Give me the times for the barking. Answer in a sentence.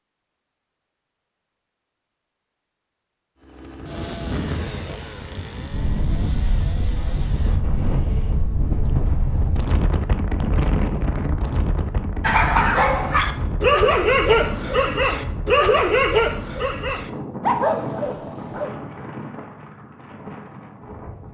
The barking can be heard from 12.2 to 18.7 s.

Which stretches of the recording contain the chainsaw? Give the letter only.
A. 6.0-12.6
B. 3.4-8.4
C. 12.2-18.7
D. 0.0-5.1
B.